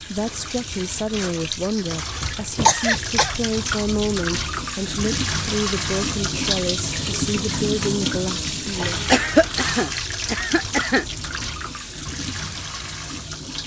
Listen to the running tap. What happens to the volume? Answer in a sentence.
The loudness of the running tap goes up, then down.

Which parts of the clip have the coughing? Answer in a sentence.
You can hear the coughing from 2.2 to 3.9 s and from 9.1 to 11.1 s.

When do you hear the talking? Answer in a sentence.
The talking can be heard from 0.1 to 9.0 s.